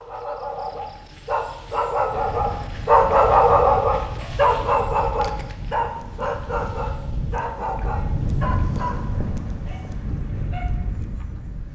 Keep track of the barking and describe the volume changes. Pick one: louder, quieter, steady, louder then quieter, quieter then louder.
louder then quieter.